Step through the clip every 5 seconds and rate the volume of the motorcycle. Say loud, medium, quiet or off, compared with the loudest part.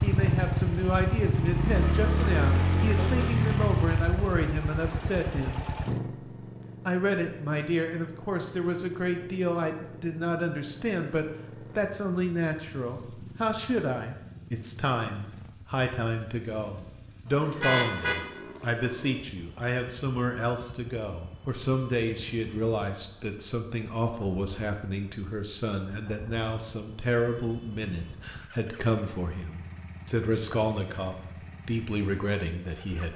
loud, medium, quiet, quiet, quiet, quiet, quiet.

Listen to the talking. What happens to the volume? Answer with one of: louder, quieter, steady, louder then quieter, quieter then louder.
steady.